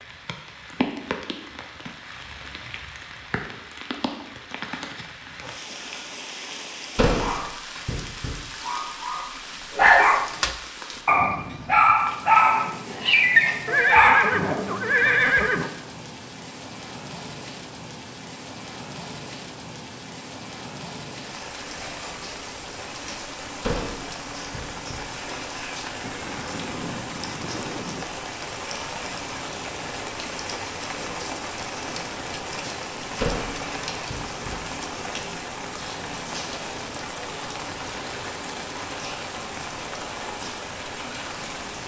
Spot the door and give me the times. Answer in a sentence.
You can hear the door from 7.0 to 8.3 s, from 23.6 to 25.0 s and from 33.2 to 34.5 s.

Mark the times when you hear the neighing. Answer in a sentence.
You can hear the neighing from 13.7 to 15.7 s and from 26.0 to 28.1 s.